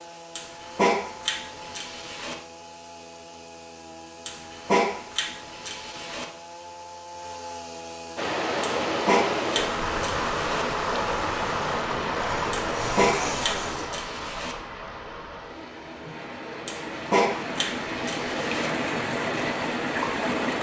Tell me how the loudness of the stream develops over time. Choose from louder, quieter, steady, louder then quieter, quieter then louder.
quieter then louder.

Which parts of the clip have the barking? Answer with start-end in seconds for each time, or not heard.
0.3-2.4, 4.2-6.2, 8.6-10.7, 12.5-14.6, 16.6-18.7.